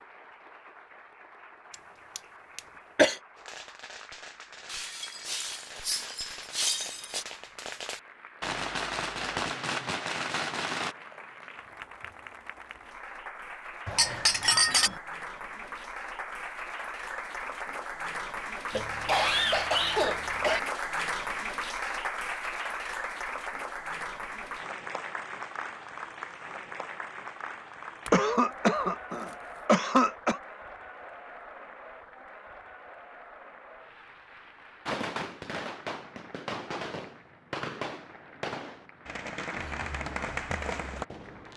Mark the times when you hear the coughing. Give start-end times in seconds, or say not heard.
2.1-3.1, 18.7-20.6, 28.1-30.4.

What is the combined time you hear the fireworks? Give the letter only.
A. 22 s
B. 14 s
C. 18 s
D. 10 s
B.